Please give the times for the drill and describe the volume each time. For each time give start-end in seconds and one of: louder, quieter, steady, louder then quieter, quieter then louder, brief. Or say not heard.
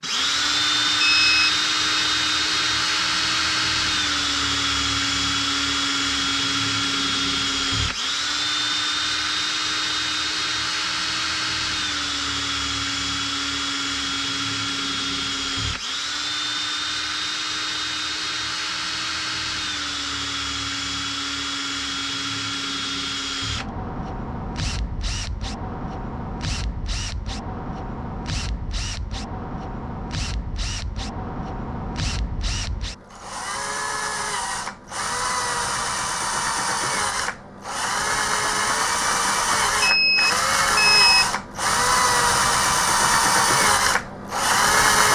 0.0-45.1 quieter then louder.